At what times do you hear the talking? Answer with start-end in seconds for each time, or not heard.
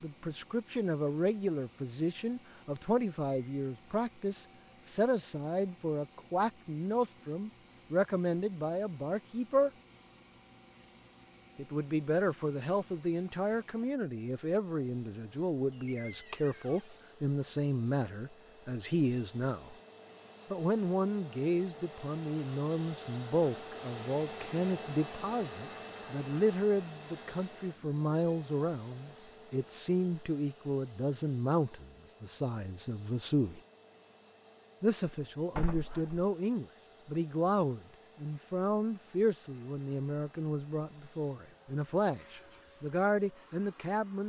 0.0-9.7, 11.6-19.8, 20.5-33.6, 34.8-44.2.